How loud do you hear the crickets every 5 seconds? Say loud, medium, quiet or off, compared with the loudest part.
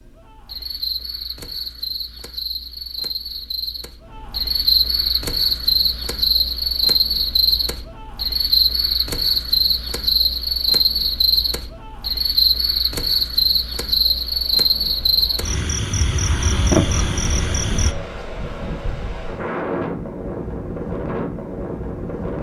medium, loud, loud, loud, off.